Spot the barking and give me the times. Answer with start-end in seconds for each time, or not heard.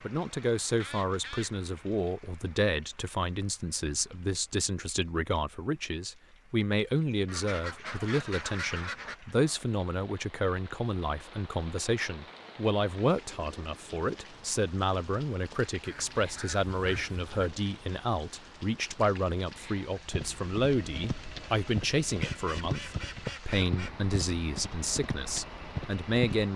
not heard.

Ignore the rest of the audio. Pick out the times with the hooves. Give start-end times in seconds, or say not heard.
20.1-26.5.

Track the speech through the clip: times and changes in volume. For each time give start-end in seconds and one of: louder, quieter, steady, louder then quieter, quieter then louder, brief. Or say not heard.
0.0-26.5 steady.